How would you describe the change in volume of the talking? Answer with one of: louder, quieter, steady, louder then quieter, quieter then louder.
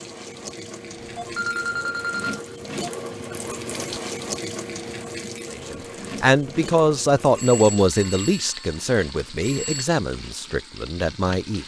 quieter.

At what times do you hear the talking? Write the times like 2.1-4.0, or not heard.
5.5-11.6.